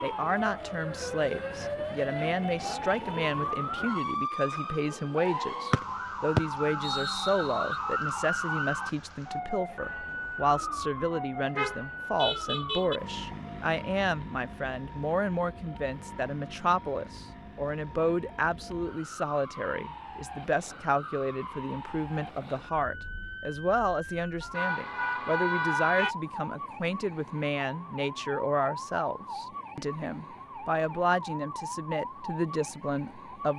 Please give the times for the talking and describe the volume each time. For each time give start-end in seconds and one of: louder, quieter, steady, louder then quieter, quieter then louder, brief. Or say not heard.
0.0-33.5 steady.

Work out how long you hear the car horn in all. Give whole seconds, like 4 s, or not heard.
3 s.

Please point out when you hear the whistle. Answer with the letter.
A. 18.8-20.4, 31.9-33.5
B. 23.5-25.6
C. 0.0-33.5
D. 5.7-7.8
D.